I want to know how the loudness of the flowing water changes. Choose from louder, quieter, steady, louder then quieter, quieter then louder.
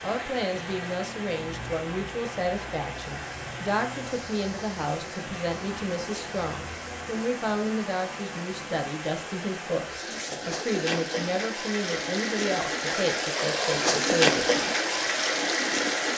louder.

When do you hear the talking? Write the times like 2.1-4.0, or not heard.
0.0-14.7.